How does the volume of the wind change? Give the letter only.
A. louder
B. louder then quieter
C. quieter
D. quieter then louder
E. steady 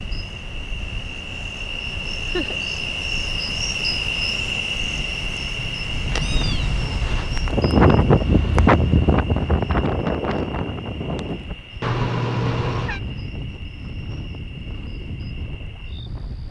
B.